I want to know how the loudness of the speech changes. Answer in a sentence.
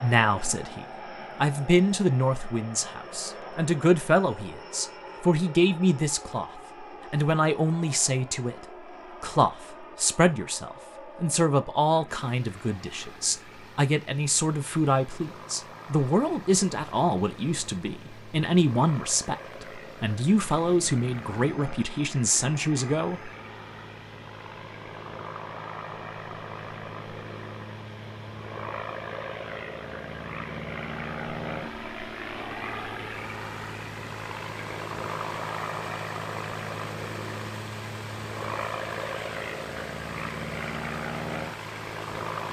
The volume of the speech stays about the same.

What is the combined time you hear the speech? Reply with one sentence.
The speech can be heard for 23 seconds in total.